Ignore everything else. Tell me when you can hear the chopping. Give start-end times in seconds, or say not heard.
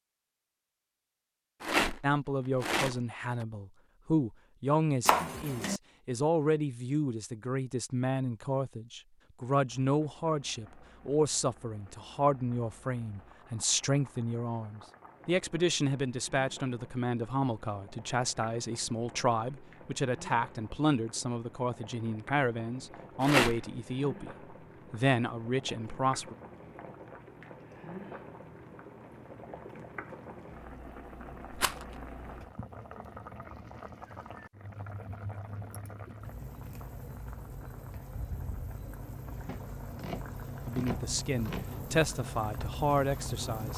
5.0-5.8, 39.5-41.7.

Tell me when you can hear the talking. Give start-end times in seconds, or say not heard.
2.0-26.4, 40.6-43.7.